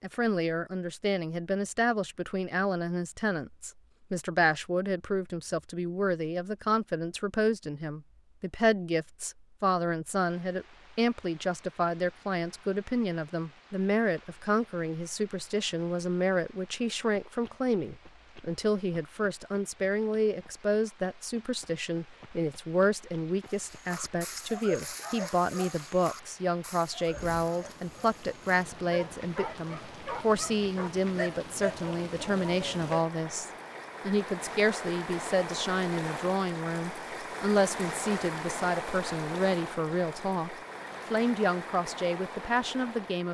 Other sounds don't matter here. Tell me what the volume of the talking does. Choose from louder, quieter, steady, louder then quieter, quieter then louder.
steady.